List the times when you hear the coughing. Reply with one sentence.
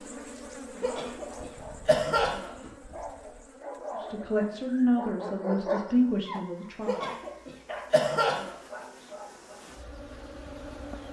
The coughing can be heard from 0.8 to 2.7 s and from 6.8 to 8.6 s.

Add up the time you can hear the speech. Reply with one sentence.
The speech can be heard for 3 seconds in total.